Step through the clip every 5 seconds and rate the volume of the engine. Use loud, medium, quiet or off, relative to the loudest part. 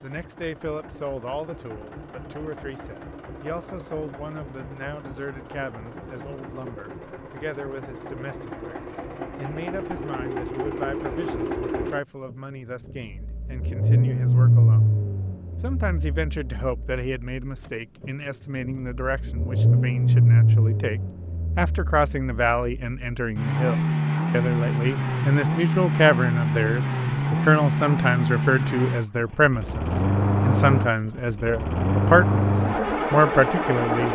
quiet, quiet, loud, medium, loud, loud, loud.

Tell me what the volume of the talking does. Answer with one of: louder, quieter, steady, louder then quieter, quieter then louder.
louder.